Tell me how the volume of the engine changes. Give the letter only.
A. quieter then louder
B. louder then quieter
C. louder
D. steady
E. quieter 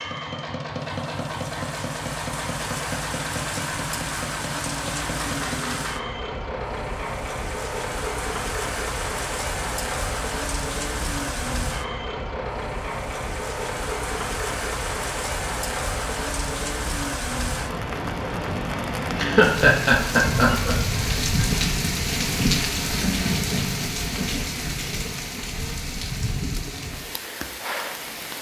D.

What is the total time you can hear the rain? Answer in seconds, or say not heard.
28 s.